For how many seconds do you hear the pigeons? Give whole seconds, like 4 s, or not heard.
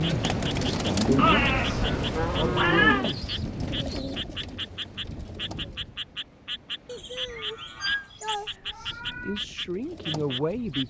8 s.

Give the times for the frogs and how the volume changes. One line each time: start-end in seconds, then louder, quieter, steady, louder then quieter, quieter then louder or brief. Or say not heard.
0.0-10.8 steady.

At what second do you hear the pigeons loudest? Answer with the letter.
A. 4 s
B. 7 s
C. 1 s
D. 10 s
C.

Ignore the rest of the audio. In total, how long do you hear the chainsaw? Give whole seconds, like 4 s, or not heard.
not heard.